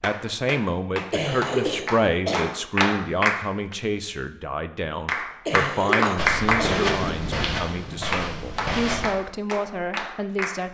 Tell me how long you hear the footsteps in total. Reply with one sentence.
The footsteps can be heard for 3 seconds in total.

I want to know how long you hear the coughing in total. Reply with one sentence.
The coughing can be heard for 3 seconds in total.